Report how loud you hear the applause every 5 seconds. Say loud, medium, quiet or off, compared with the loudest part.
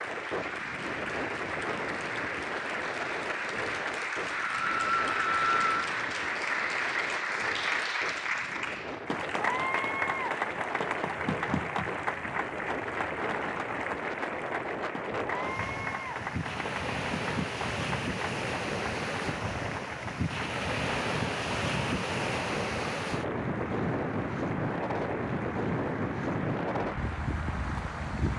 loud, loud, loud, medium, medium, medium.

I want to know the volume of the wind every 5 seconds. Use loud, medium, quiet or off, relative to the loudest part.
medium, medium, medium, loud, loud, loud.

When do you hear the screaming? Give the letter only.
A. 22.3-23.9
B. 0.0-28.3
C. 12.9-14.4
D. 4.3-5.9
D.